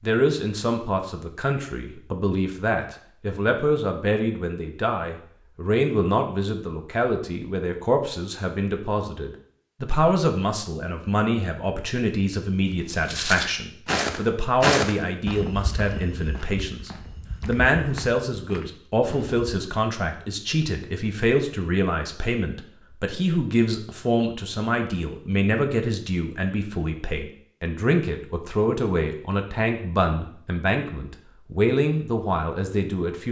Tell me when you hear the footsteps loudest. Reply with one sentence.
The volume of the footsteps peaks at 15 seconds.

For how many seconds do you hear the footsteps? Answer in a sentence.
The footsteps can be heard for 7 seconds in total.